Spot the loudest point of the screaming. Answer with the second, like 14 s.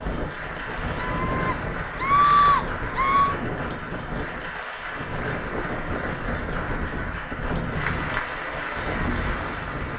2 s.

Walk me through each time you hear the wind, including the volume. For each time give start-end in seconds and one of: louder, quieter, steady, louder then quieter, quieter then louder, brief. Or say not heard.
0.0-9.9 steady.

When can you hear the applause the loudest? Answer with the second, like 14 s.
8 s.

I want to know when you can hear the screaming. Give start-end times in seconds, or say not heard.
0.9-3.4.